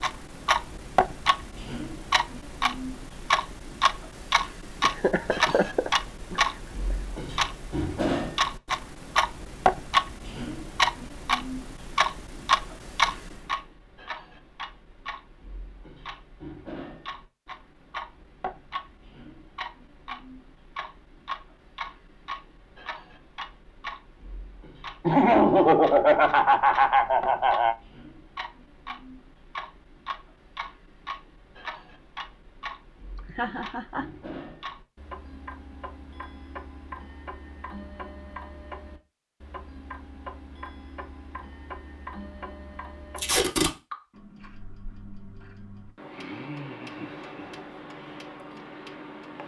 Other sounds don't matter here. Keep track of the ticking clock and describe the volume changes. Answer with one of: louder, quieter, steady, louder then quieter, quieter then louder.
quieter.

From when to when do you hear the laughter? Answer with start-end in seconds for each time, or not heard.
4.8-7.0, 25.1-27.8, 33.1-34.0.